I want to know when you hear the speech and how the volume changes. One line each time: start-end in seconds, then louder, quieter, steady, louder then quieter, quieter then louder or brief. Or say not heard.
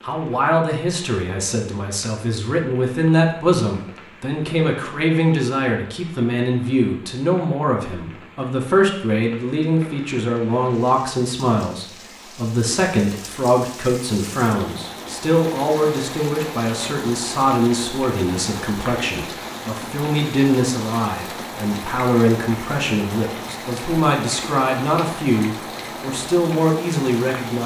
0.0-27.6 steady.